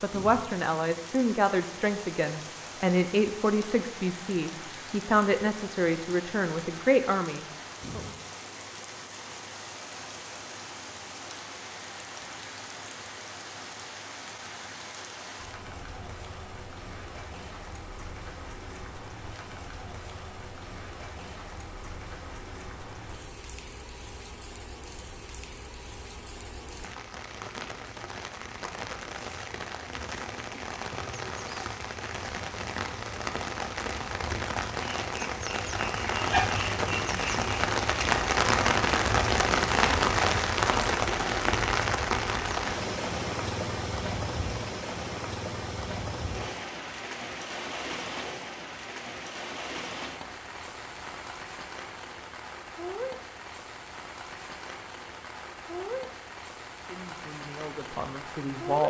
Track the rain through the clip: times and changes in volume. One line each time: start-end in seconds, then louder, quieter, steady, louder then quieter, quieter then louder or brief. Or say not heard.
0.0-58.8 louder then quieter.